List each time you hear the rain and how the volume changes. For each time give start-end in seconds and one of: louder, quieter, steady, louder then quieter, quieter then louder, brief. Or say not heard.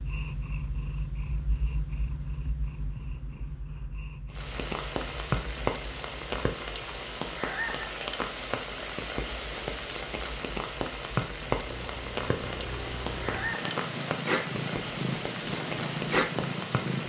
4.3-17.0 steady.